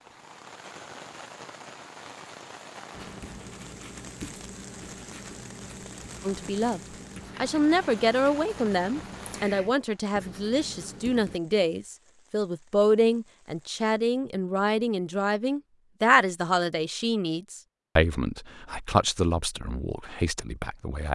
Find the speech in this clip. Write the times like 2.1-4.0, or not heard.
6.2-21.1.